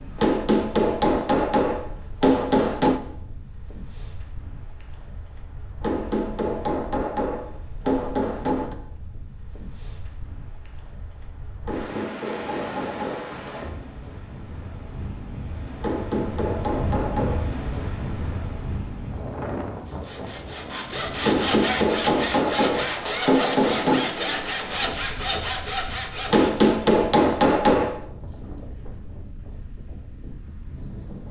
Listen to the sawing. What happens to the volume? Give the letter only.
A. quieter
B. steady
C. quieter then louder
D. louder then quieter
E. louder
B.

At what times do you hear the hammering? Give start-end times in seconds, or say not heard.
0.1-3.0, 5.8-8.8, 11.7-13.3, 15.8-17.5, 21.2-24.1, 26.3-28.0.